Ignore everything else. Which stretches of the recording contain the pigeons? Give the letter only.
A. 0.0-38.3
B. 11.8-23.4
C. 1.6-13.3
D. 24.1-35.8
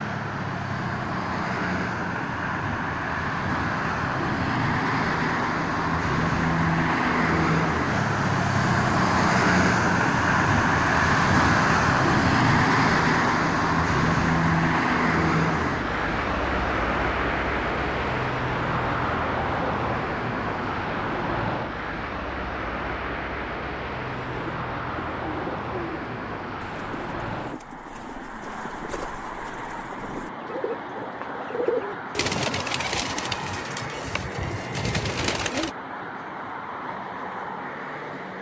D.